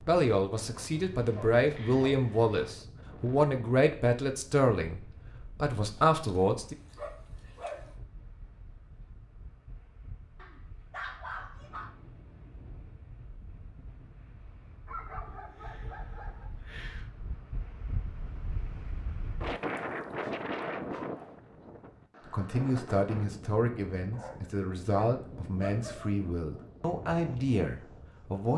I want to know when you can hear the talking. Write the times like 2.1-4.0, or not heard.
0.0-6.8, 22.2-28.5.